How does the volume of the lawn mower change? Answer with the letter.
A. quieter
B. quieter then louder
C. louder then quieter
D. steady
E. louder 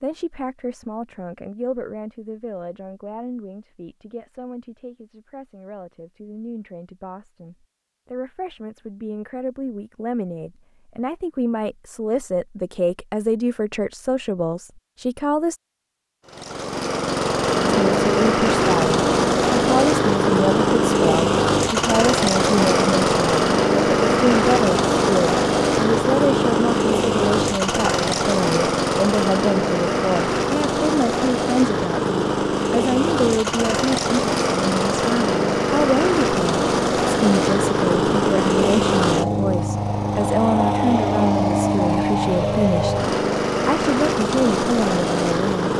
D.